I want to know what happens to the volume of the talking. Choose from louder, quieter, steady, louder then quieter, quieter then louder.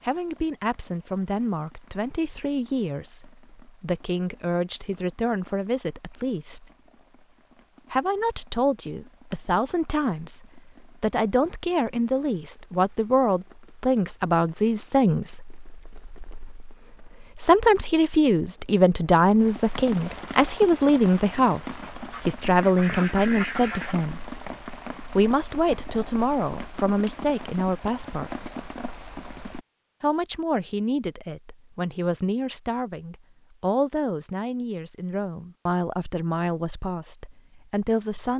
louder then quieter.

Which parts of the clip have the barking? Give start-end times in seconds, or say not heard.
not heard.